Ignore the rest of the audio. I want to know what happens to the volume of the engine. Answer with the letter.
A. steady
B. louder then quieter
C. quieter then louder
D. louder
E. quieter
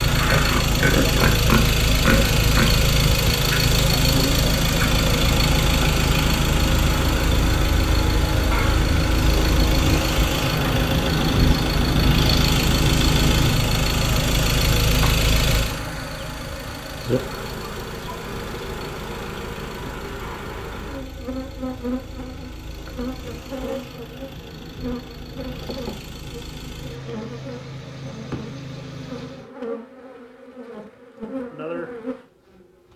E.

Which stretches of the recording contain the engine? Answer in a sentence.
The engine can be heard from 0.0 to 29.5 s.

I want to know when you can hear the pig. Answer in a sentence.
You can hear the pig from 0.2 to 2.8 s.